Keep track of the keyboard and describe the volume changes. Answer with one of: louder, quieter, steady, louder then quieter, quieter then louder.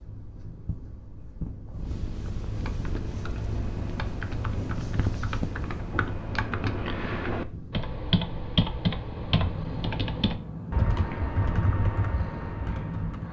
louder.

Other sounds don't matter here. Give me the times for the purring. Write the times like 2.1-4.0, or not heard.
0.0-13.2.